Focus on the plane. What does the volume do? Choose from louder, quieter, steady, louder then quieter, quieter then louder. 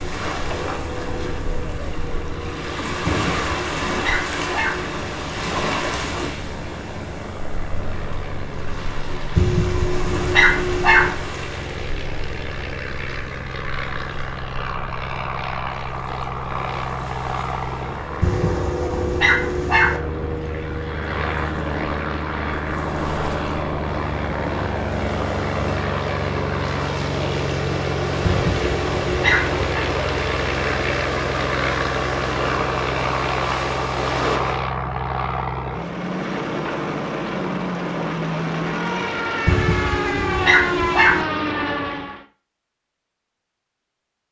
louder.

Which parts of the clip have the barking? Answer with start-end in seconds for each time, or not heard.
3.0-4.8, 9.3-11.2, 18.2-20.0, 28.2-29.6, 39.5-41.2.